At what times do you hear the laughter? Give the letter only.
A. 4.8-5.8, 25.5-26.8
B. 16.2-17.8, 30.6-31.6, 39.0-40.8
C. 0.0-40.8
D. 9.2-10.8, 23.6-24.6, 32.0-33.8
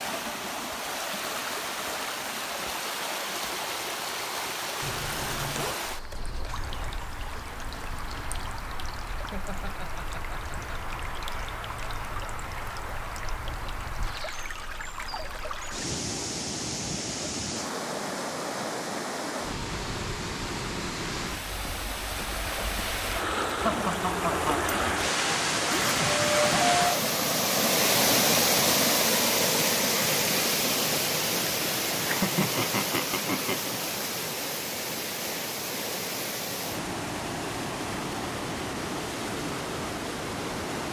D.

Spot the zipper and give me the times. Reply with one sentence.
You can hear the zipper from 4.8 to 5.8 s and from 25.5 to 26.8 s.